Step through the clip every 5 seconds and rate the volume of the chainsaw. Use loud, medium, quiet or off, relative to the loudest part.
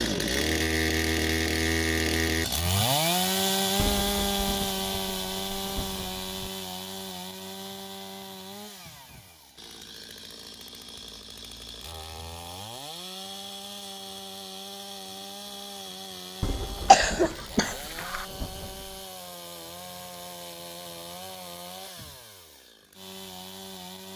loud, medium, quiet, quiet, quiet.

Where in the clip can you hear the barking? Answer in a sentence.
You can't hear the barking here.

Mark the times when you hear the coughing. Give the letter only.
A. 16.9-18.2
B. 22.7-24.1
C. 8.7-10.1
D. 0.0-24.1
A.